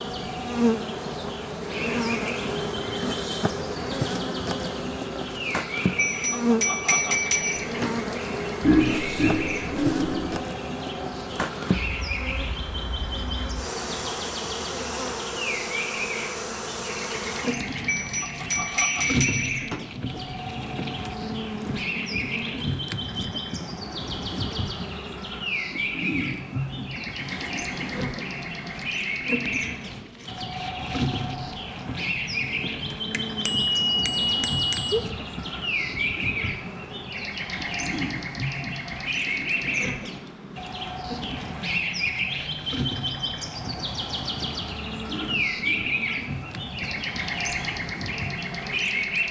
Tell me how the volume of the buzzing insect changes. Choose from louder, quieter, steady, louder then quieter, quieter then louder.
quieter.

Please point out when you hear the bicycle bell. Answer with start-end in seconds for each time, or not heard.
6.0-8.0, 17.9-19.9, 33.1-35.0.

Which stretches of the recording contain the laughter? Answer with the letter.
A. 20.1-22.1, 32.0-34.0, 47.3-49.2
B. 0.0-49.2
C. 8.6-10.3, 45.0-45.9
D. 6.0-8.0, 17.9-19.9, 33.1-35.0
C.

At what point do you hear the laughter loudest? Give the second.
9 s.